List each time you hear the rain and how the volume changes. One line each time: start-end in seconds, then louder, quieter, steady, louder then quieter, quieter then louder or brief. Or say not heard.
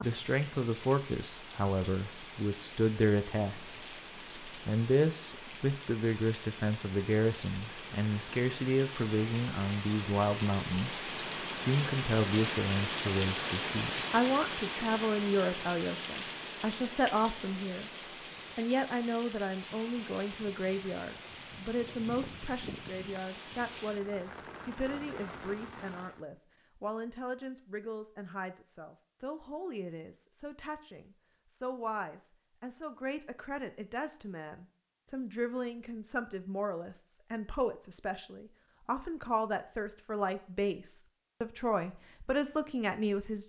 0.0-26.2 louder then quieter.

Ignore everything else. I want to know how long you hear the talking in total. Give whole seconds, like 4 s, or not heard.
42 s.